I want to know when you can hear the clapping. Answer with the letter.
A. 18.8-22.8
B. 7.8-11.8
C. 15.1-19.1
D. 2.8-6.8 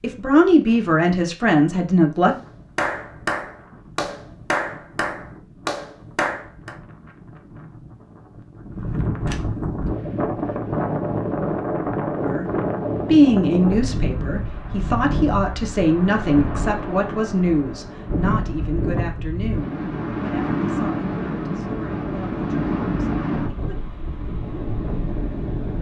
D.